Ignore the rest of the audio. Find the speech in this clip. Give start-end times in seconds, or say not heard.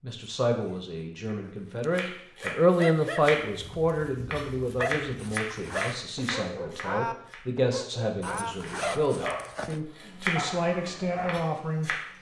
0.0-11.9.